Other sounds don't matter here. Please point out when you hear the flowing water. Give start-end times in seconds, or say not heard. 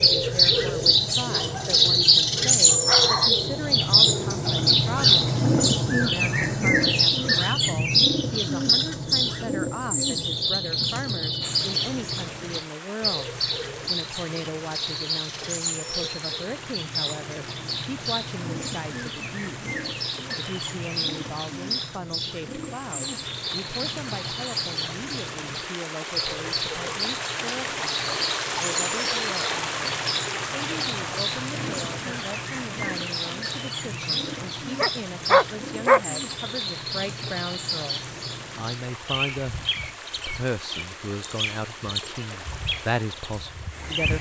11.4-44.1.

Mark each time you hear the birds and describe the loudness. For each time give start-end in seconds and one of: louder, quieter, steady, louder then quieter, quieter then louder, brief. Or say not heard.
0.0-44.1 quieter.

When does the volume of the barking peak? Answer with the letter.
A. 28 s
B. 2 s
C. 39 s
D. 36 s
D.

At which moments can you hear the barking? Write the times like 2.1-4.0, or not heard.
1.3-1.8, 2.6-3.3, 34.8-36.0.